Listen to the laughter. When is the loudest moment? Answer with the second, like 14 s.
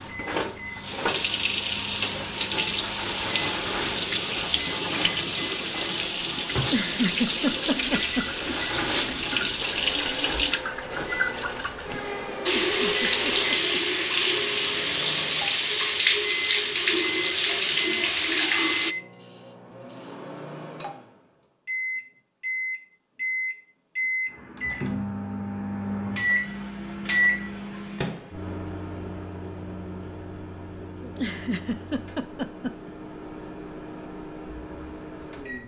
7 s.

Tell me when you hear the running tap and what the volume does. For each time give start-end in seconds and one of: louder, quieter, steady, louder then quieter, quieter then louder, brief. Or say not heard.
0.0-18.9 steady.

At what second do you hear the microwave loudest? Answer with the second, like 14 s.
27 s.